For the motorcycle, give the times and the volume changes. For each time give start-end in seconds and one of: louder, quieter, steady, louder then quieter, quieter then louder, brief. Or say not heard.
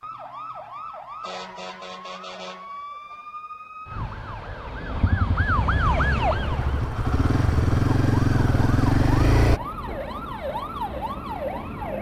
4.9-9.6 louder.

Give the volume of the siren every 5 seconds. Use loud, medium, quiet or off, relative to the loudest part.
medium, loud, loud.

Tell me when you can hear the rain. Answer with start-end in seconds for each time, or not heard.
not heard.